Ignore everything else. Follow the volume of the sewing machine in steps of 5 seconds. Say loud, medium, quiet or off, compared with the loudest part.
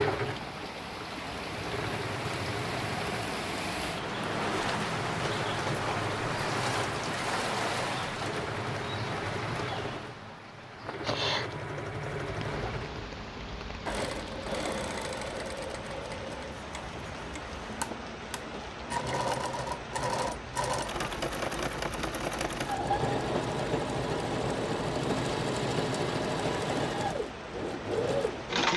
medium, medium, medium, medium, loud, loud.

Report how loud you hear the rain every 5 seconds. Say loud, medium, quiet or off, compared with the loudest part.
loud, loud, medium, medium, medium, medium.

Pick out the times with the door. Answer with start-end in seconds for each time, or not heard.
not heard.